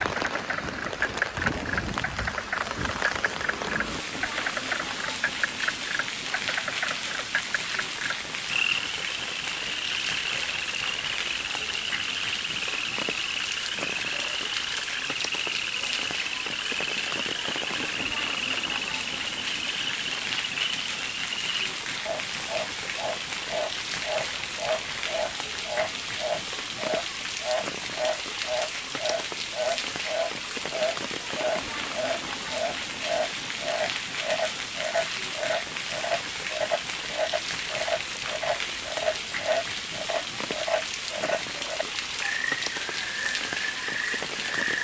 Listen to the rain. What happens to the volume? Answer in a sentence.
The loudness of the rain stays about the same.